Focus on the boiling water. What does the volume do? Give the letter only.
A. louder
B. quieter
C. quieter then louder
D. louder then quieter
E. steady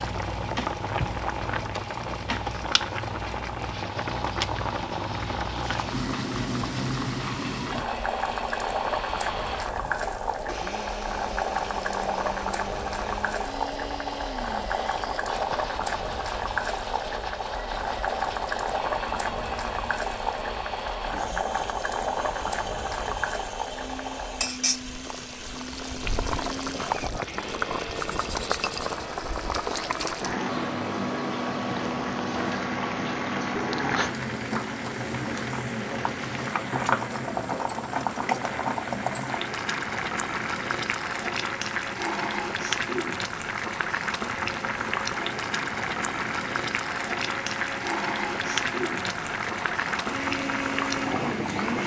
E.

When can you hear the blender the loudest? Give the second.
51 s.